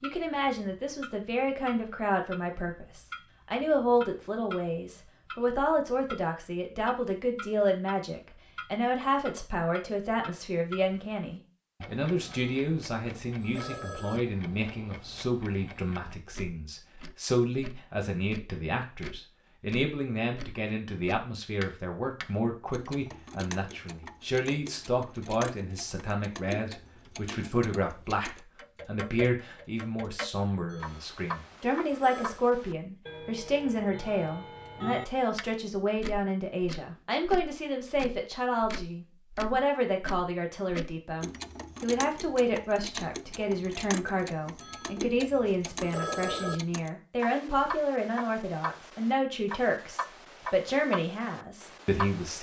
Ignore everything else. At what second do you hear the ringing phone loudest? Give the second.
46 s.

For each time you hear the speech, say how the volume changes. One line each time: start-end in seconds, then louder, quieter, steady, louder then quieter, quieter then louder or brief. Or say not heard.
0.0-52.3 steady.